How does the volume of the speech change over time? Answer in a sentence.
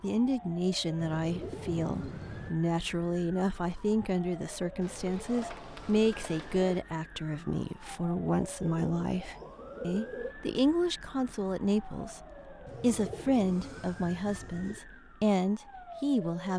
The volume of the speech stays about the same.